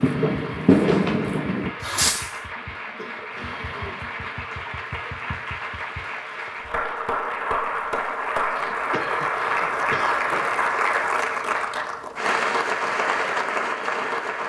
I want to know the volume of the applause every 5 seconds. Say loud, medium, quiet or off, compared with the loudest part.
medium, loud, loud.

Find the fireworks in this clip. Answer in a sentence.
You can hear the fireworks from 0.0 to 2.4 s.